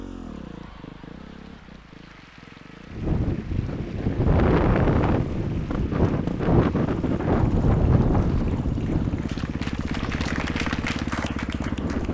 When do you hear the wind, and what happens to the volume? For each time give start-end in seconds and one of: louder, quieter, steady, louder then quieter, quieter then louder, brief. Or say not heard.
2.9-12.0 quieter.